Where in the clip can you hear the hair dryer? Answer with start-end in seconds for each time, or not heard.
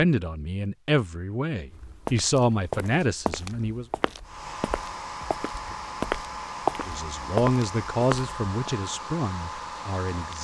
4.2-10.4.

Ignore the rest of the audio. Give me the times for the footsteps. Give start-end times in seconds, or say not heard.
1.7-8.7.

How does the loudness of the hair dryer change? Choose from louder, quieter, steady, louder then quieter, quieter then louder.
steady.